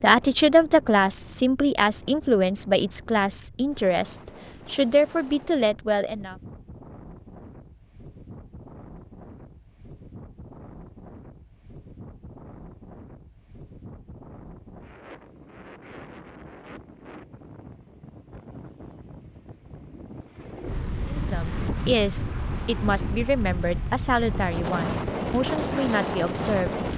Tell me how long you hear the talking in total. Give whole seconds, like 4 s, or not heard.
12 s.